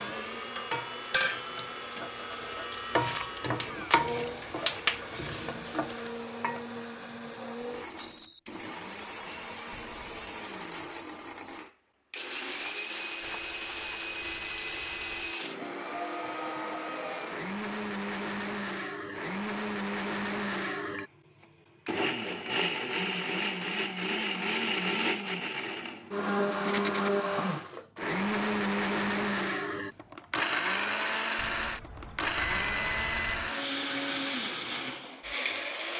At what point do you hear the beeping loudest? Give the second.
33 s.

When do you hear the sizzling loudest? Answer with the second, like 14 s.
4 s.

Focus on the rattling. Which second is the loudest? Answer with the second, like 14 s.
27 s.